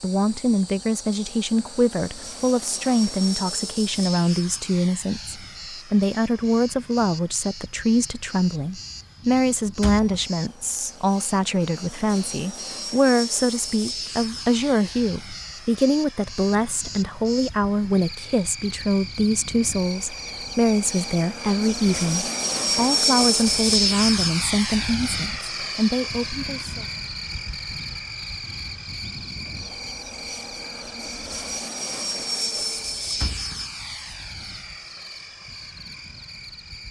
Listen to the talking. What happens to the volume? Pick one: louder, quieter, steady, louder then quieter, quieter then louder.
steady.